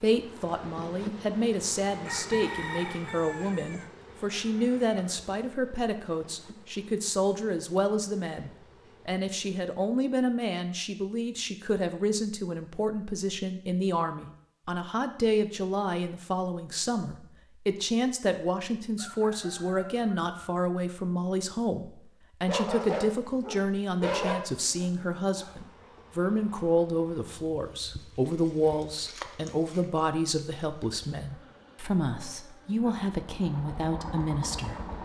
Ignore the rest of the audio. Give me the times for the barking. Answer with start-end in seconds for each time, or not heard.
22.4-24.4.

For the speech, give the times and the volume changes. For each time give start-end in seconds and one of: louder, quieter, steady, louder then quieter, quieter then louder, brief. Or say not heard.
0.0-35.0 steady.